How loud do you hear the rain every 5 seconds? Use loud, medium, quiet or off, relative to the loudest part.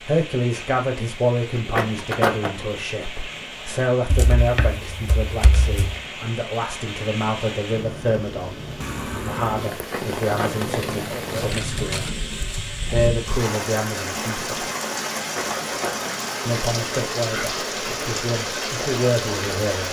medium, medium, loud, loud.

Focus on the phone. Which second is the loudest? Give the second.
2 s.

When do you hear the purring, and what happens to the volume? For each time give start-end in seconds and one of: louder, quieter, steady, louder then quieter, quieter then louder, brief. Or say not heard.
not heard.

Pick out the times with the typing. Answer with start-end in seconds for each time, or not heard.
4.1-6.0, 10.4-12.1.